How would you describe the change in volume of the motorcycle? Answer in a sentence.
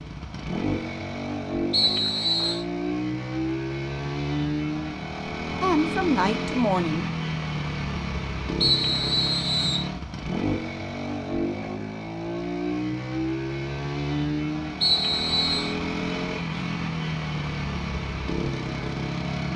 The loudness of the motorcycle stays about the same.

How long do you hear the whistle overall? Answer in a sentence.
The whistle can be heard for 3 seconds in total.